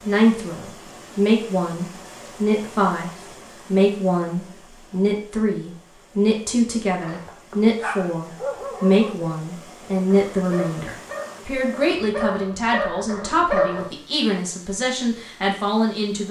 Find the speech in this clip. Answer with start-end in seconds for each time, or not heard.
0.1-16.2.